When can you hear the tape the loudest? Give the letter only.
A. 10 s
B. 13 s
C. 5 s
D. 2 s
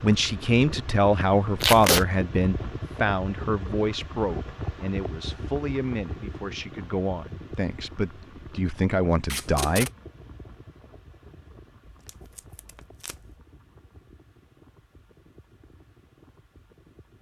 D.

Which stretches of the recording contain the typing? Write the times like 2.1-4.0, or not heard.
not heard.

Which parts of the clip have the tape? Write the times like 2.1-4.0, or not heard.
1.6-2.0, 9.2-9.9, 11.8-13.3.